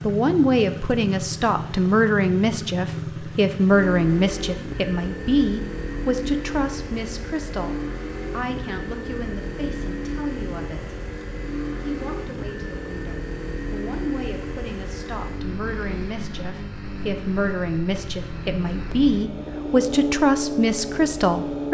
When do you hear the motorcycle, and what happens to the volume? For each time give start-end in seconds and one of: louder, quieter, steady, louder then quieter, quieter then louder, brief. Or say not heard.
0.0-21.6 steady.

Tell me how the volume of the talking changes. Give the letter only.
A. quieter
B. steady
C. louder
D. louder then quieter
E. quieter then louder
E.